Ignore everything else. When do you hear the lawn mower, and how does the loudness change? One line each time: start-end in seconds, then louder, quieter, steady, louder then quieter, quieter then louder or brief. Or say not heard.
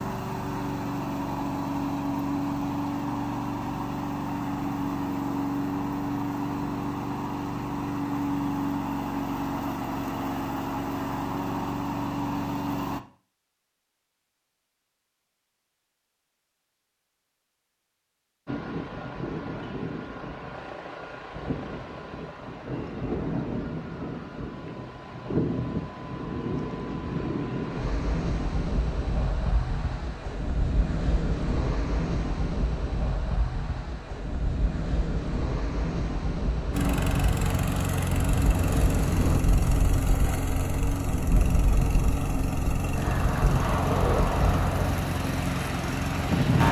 0.0-13.0 steady
36.7-46.6 steady.